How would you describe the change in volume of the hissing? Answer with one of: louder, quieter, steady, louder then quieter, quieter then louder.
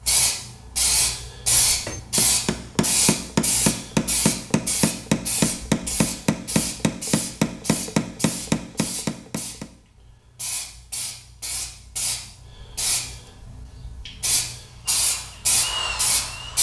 quieter then louder.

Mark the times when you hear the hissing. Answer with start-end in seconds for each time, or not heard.
0.1-16.5.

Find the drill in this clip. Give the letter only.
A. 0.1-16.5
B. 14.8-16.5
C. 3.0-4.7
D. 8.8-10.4
B.